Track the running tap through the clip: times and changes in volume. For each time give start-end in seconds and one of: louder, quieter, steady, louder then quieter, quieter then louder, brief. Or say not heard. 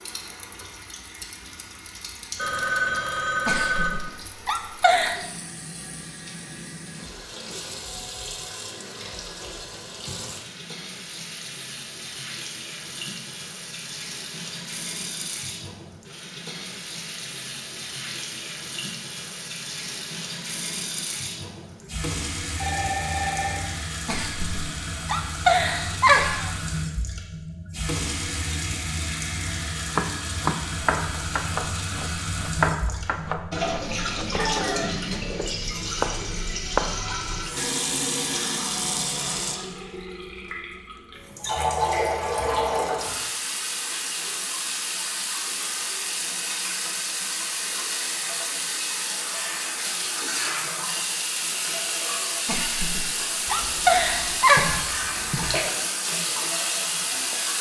0.0-57.5 louder.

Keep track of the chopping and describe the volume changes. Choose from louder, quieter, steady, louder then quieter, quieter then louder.
quieter then louder.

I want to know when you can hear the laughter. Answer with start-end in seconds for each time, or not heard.
3.5-5.2, 24.1-26.6, 52.5-54.9.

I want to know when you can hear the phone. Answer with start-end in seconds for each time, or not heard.
2.4-4.0, 22.6-23.7, 53.5-55.5.